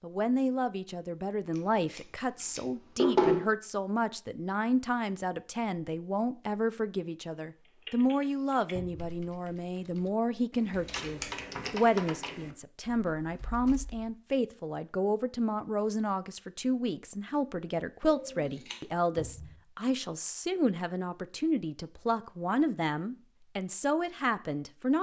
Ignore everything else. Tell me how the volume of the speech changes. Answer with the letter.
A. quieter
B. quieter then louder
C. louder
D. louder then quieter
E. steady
E.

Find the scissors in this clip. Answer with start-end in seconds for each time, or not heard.
1.6-3.5, 10.7-11.4, 18.0-18.8.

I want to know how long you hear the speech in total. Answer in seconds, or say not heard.
25 s.